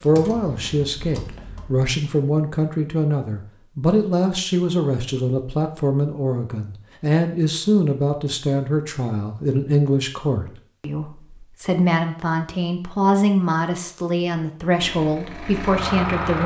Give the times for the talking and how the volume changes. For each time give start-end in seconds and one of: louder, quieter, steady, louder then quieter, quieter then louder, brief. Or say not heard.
0.0-16.4 steady.